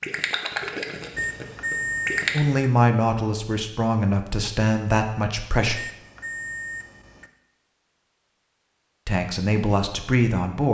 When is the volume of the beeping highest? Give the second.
2 s.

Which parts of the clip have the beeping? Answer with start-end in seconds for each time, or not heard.
1.1-2.5, 5.7-7.3.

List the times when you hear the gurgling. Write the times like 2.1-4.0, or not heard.
0.0-2.4.